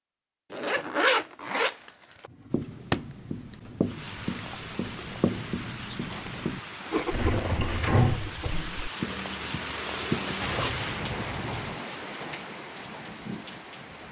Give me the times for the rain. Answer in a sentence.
The rain can be heard from 3.8 to 14.0 s.